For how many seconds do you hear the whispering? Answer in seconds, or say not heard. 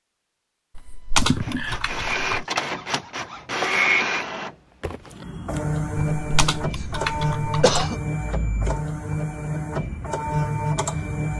not heard.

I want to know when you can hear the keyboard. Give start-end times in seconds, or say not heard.
0.8-2.5, 6.2-7.8.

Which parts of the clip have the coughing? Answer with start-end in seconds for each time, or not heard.
1.2-2.0, 6.1-6.8, 7.6-8.0.